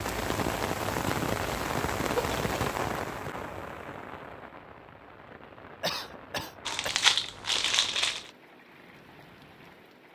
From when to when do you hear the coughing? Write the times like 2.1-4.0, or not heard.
2.1-2.5, 5.8-7.0.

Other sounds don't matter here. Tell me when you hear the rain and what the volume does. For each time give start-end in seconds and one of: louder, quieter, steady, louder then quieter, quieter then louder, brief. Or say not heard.
0.0-10.1 quieter.